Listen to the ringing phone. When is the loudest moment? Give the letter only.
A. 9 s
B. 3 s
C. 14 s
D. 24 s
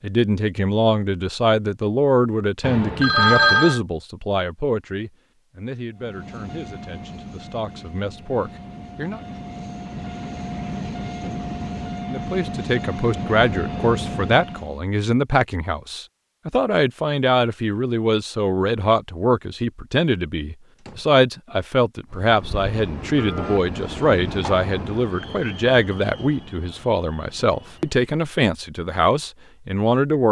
B.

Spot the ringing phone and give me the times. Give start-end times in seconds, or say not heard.
2.6-3.8, 13.1-14.4, 23.1-23.6.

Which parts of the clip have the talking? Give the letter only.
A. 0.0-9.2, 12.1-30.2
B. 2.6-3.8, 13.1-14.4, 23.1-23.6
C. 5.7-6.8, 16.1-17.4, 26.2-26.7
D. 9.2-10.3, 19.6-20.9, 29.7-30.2
A.